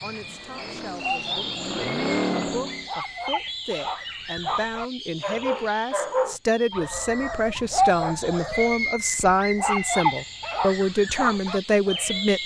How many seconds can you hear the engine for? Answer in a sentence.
You can hear the engine for 3 seconds altogether.